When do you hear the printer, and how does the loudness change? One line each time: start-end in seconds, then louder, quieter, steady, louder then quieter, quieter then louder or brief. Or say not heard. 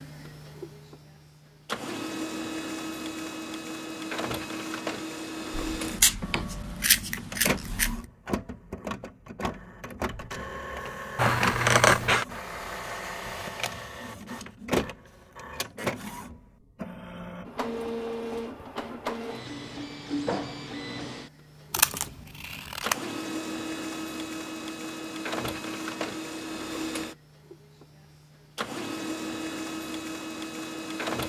0.0-31.2 steady.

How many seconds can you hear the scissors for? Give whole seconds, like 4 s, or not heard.
5 s.